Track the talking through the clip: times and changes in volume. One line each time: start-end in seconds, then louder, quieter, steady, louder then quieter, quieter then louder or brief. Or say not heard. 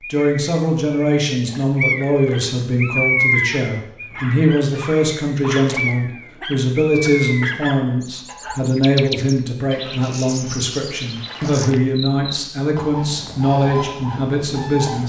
0.1-15.0 steady.